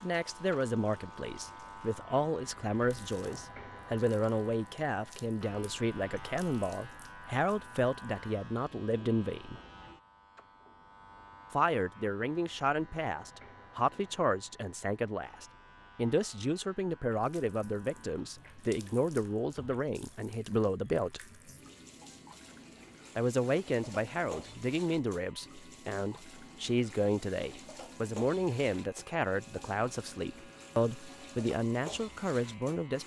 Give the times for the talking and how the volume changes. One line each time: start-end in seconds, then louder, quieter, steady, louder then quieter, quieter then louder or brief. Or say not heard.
0.0-9.6 steady
11.5-21.2 steady
23.1-33.0 steady.